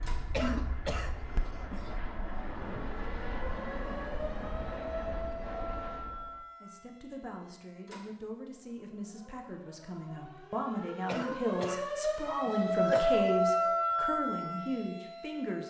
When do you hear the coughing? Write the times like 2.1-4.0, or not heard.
0.3-2.0, 11.1-11.8, 12.4-13.2.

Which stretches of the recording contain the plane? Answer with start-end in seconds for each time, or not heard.
0.0-6.5.